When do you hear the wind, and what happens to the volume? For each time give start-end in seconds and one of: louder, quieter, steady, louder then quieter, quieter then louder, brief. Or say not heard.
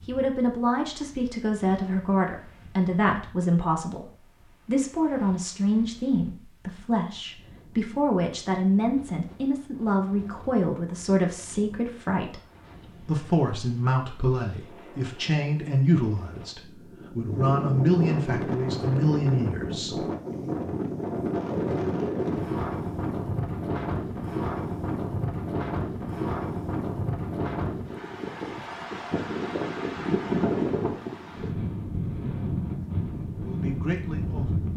0.0-34.7 louder.